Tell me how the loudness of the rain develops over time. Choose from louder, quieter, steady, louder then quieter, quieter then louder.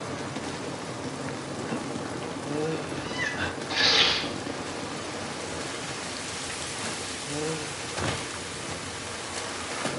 steady.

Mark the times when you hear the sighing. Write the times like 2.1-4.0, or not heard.
2.4-3.1, 7.2-7.8.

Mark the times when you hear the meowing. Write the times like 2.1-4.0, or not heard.
3.0-4.2.